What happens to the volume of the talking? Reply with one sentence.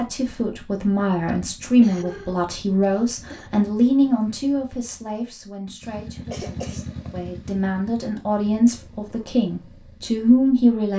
The loudness of the talking goes down, then up.